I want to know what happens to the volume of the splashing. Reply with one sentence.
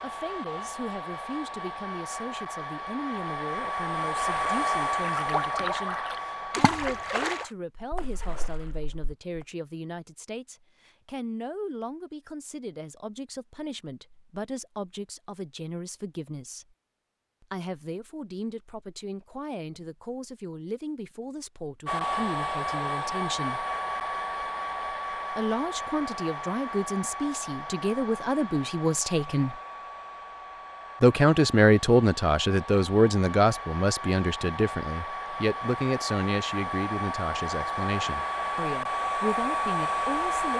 The loudness of the splashing goes down.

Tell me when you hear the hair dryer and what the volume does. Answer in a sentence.
You can hear the hair dryer from 0.0 to 7.5 s, getting louder then quieter; and from 21.9 to 40.5 s, getting quieter then louder.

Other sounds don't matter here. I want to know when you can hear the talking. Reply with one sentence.
The talking can be heard from 0.0 to 16.6 s, from 17.4 to 23.6 s, from 25.3 to 29.6 s and from 31.0 to 40.5 s.